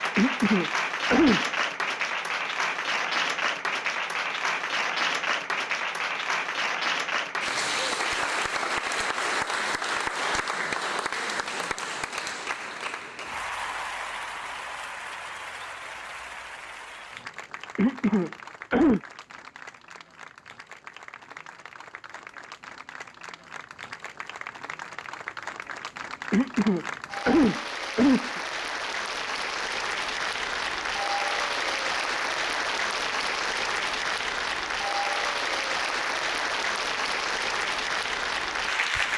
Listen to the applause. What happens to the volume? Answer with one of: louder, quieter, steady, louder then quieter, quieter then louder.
quieter then louder.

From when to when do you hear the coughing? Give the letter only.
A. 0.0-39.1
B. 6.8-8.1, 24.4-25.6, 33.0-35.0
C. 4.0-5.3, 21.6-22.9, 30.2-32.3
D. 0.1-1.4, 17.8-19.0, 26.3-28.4
D.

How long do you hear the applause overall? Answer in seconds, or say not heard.
39 s.